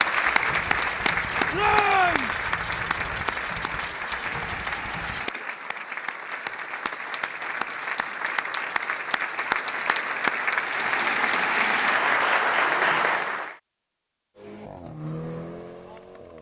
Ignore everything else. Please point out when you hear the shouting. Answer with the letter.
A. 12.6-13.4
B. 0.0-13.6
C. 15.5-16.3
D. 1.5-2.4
D.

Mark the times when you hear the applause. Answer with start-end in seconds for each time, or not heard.
0.0-13.6.